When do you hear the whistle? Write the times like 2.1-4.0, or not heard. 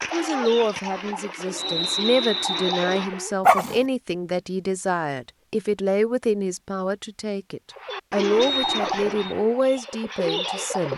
1.6-3.0, 8.3-9.3.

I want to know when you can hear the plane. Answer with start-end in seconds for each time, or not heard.
not heard.